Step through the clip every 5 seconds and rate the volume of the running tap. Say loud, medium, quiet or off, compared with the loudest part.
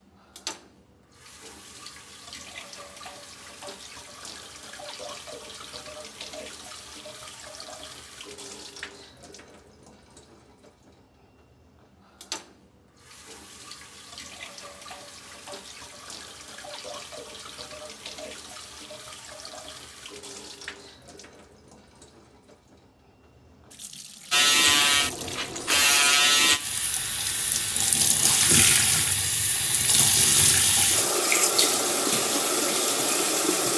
quiet, quiet, quiet, quiet, quiet, loud, loud.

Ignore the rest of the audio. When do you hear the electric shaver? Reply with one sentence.
The electric shaver can be heard from 24.3 to 27.9 s.